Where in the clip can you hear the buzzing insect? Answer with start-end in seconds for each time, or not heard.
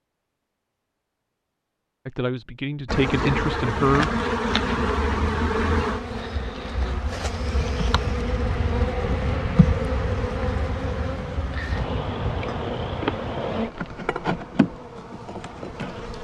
2.9-16.1.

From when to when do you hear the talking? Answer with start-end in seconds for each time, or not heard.
2.0-4.1.